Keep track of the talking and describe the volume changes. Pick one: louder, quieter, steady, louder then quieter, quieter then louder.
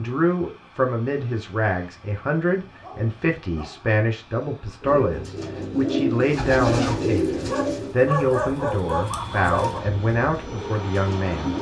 steady.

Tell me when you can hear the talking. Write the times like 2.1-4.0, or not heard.
0.0-11.5.